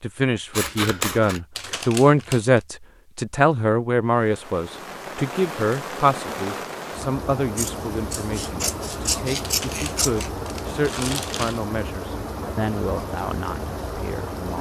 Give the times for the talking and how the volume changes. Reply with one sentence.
You can hear the talking from 0.0 to 14.5 s, getting quieter.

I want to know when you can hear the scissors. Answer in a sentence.
You can hear the scissors from 0.5 to 1.4 s and from 7.5 to 10.3 s.